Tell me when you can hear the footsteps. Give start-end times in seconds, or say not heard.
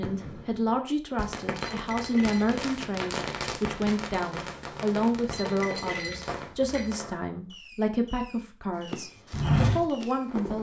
8.9-10.4.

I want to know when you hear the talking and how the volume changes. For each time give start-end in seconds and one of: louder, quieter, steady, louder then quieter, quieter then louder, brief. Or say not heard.
0.0-10.5 steady.